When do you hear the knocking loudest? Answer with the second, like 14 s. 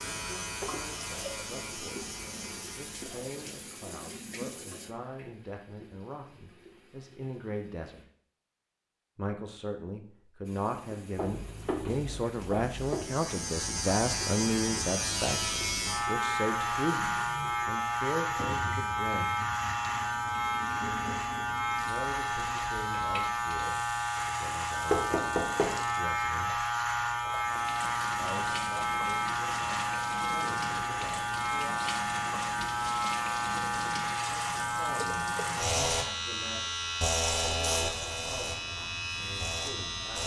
25 s.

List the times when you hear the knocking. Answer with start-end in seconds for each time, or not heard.
11.2-13.1, 24.9-25.8.